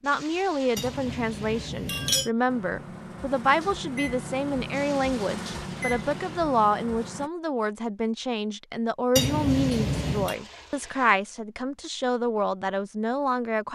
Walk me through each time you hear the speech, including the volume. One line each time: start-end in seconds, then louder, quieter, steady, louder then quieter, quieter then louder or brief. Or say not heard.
0.0-13.6 steady.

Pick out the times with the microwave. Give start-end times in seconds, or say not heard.
2.5-7.3.